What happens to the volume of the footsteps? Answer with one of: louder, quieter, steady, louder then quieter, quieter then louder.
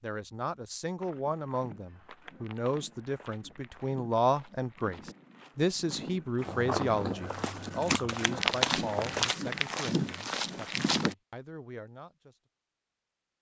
louder.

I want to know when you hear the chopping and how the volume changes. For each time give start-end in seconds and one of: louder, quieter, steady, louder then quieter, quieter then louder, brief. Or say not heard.
not heard.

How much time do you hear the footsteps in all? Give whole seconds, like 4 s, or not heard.
10 s.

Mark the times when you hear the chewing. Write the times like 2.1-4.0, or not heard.
6.4-9.2.